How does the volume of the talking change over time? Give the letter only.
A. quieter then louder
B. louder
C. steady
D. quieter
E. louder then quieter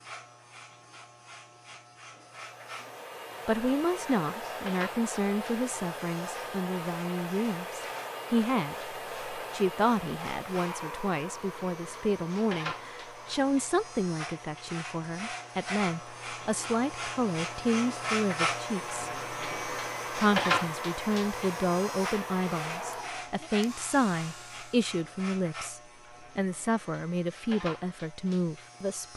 C.